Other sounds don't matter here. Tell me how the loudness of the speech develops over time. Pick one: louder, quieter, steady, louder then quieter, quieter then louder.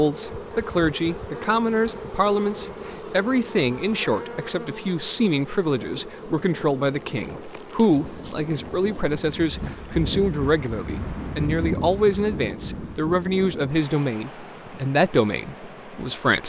steady.